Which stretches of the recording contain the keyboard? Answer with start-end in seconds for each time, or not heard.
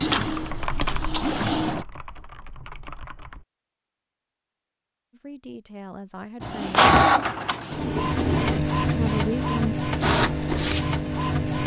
0.1-3.5.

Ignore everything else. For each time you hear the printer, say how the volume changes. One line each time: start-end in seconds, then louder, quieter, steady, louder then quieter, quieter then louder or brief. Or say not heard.
0.0-1.9 brief
6.4-11.6 quieter.